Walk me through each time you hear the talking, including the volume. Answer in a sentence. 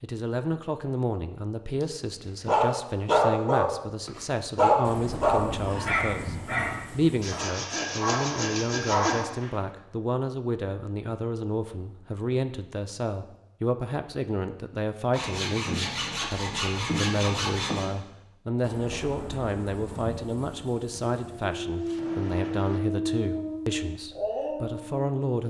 The talking can be heard from 0.0 to 25.4 s, at a steady volume.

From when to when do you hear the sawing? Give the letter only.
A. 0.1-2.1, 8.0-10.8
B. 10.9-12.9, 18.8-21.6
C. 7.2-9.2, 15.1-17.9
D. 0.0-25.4
C.